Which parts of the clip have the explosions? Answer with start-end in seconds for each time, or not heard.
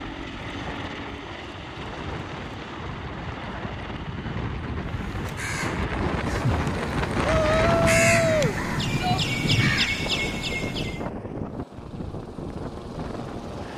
not heard.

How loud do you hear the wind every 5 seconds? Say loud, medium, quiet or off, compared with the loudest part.
medium, loud, medium.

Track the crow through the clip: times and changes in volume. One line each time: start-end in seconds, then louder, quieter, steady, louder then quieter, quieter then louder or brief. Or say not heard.
4.8-11.1 louder.